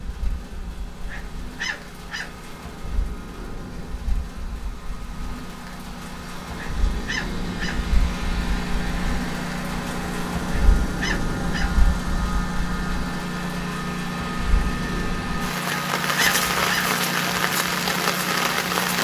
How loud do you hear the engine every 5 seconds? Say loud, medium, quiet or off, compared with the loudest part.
quiet, loud, loud, loud.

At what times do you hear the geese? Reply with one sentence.
You can't hear the geese here.